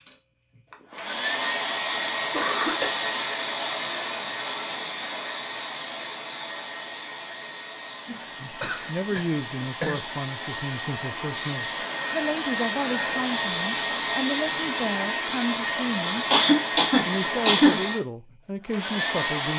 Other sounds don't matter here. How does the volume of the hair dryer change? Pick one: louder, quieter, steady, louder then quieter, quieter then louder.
quieter then louder.